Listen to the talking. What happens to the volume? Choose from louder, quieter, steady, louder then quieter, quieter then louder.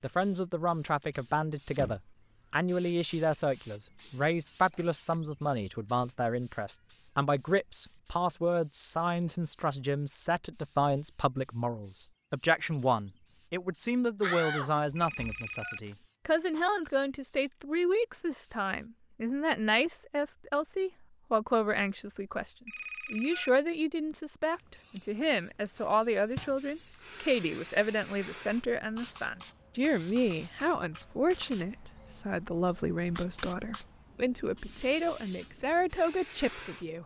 steady.